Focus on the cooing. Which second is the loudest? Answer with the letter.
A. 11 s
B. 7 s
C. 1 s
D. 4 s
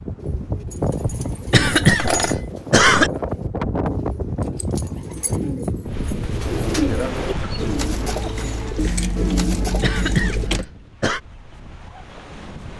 B.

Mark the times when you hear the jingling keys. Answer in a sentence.
You can hear the jingling keys from 0.7 to 2.4 s, from 4.5 to 5.4 s and from 8.8 to 10.7 s.